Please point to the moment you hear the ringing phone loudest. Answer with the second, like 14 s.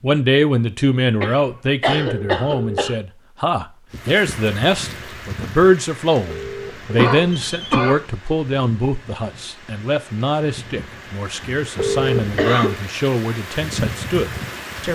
12 s.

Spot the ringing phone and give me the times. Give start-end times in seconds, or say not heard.
1.9-3.0, 6.2-7.8, 11.8-12.6.